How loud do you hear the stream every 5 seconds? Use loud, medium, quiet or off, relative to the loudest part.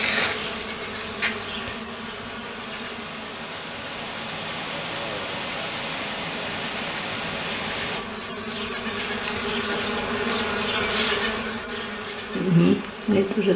medium, loud, off.